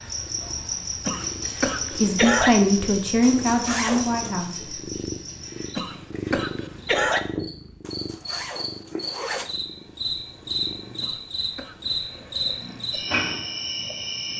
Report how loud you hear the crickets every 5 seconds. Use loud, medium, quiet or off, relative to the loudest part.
loud, medium, loud.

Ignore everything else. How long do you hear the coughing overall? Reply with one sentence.
The coughing can be heard for 4 seconds in total.